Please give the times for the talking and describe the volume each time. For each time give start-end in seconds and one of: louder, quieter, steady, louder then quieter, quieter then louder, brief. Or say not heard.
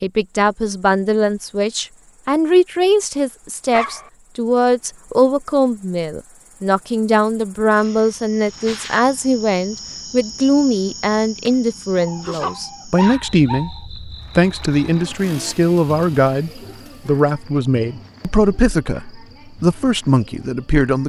0.0-21.0 steady.